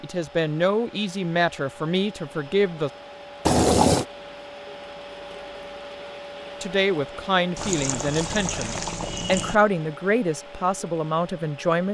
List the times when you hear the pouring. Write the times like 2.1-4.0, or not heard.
3.5-4.0, 7.5-9.6.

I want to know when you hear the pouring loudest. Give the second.
4 s.